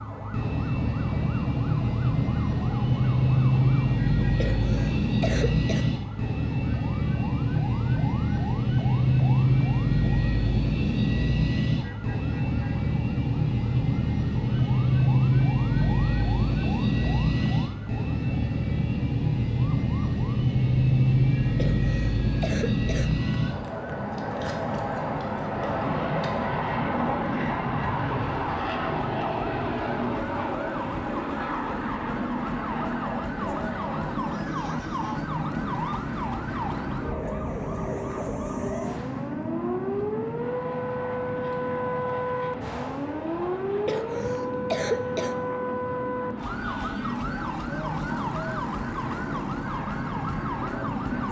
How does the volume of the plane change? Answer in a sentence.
The volume of the plane goes down.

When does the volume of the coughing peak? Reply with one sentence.
The loudest moment of the coughing is at 45 seconds.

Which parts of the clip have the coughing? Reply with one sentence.
You can hear the coughing from 4.4 to 5.8 s, from 21.6 to 23.9 s and from 43.9 to 45.4 s.